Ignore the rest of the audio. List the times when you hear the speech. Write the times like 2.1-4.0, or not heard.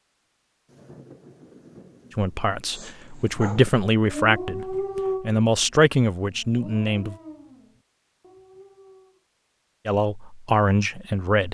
2.1-7.2, 9.8-11.4.